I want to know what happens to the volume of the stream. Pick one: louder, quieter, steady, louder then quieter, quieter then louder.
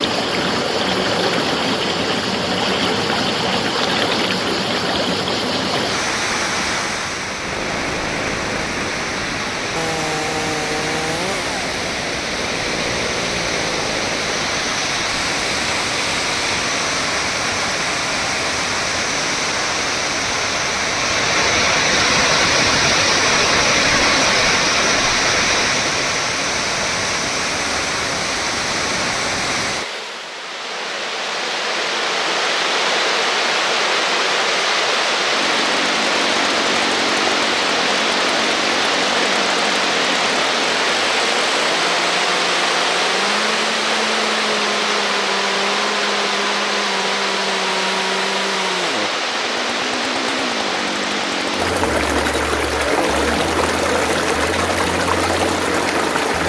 steady.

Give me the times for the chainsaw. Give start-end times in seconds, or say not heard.
7.4-14.7, 35.3-56.4.